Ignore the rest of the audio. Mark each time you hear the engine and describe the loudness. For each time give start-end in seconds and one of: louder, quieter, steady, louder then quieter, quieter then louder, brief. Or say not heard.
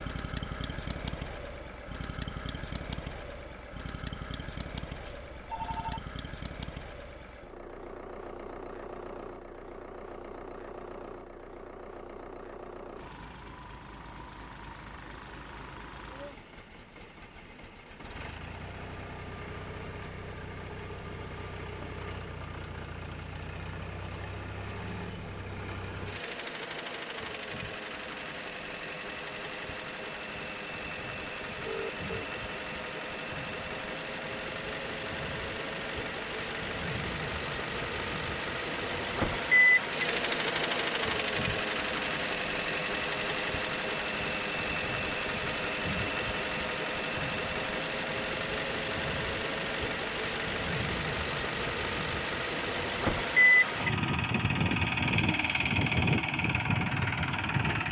0.0-57.8 louder.